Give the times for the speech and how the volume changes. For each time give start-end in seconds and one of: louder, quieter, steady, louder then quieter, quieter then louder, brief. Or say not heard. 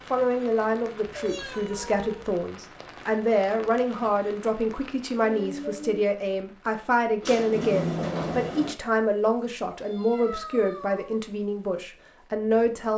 0.1-12.9 steady.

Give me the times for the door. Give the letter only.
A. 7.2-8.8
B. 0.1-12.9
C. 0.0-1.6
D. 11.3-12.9
A.